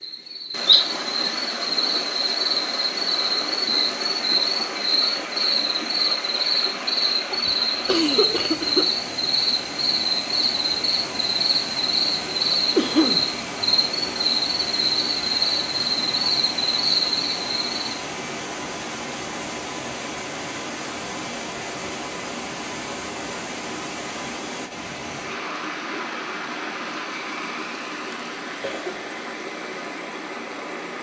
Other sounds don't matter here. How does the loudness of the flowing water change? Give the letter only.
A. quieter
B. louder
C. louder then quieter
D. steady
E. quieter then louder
D.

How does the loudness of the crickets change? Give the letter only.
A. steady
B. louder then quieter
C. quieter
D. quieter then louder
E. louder
A.